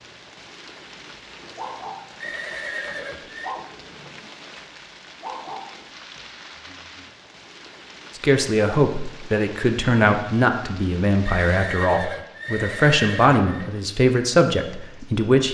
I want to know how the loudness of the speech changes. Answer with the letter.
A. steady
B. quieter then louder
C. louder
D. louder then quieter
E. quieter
A.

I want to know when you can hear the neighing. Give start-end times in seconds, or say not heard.
2.2-3.5, 11.2-13.7.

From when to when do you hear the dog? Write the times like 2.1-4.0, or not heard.
1.6-2.6, 3.4-4.2, 5.2-6.2.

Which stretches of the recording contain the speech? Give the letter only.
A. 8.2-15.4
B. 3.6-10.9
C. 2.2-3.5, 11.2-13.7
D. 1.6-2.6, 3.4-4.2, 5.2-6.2
A.